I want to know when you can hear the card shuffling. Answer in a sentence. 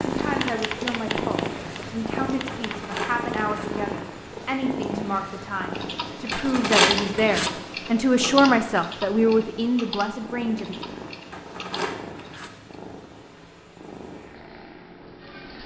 The card shuffling can be heard from 2.5 to 3.7 s, from 6.3 to 7.5 s and from 11.3 to 12.5 s.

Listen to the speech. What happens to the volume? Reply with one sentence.
The loudness of the speech goes up.